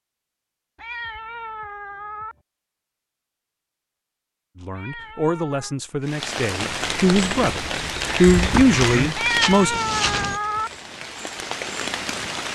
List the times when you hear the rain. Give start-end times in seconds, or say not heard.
6.0-12.4.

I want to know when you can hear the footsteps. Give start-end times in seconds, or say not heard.
8.2-10.4.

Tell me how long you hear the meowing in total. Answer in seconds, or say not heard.
4 s.